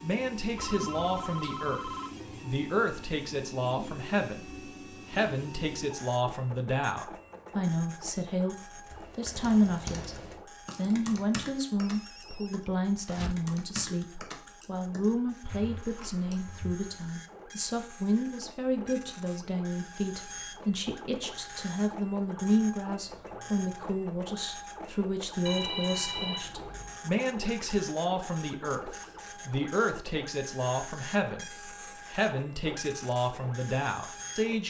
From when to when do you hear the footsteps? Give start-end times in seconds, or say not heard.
not heard.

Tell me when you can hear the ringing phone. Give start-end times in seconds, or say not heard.
0.6-2.1, 11.8-13.3, 25.4-27.0.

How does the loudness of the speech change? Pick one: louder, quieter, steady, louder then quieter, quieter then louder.
steady.